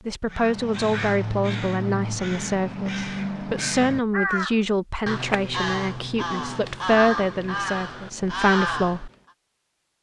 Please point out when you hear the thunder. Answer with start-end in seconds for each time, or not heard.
not heard.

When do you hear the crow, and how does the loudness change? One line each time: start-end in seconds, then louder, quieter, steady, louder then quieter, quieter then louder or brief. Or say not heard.
0.2-9.1 steady.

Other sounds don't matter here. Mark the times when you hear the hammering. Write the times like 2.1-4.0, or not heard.
not heard.